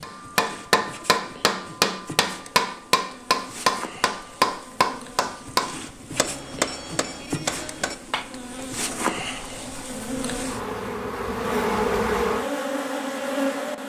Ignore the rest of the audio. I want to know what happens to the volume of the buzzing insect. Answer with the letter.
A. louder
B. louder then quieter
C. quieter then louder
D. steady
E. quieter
A.